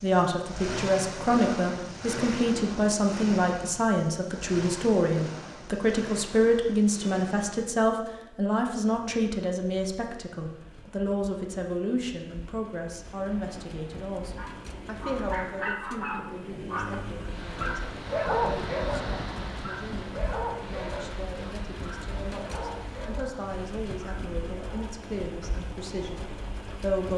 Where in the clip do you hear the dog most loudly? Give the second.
18 s.